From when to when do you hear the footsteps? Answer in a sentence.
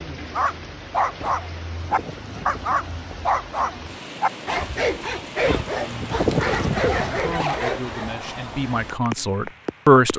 You can't hear the footsteps here.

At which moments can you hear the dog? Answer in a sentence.
The dog can be heard from 0.3 to 8.2 s.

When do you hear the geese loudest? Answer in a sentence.
The loudest moment of the geese is at 6 seconds.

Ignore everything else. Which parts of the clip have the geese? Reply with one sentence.
The geese can be heard from 1.1 to 3.1 s and from 5.5 to 7.5 s.